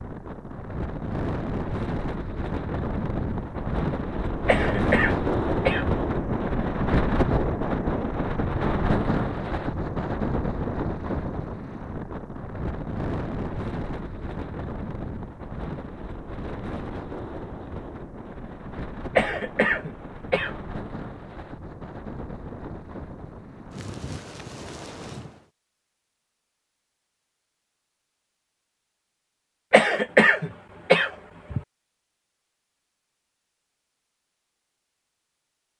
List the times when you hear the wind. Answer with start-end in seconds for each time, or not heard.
0.0-25.4.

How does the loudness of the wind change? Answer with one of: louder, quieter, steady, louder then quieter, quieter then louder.
quieter.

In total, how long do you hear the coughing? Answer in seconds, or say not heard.
5 s.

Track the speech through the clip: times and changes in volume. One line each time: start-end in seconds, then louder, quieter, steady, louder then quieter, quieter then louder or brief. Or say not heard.
not heard.